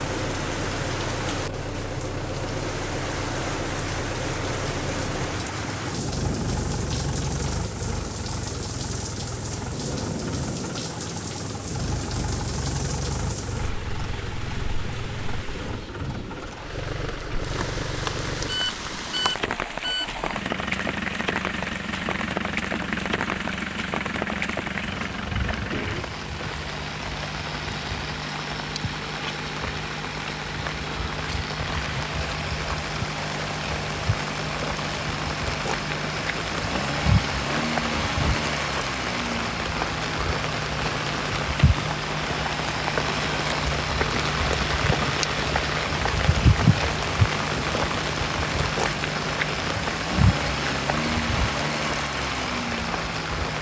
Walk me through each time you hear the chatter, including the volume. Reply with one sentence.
You can't hear the chatter here.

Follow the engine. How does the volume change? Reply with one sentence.
The volume of the engine stays about the same.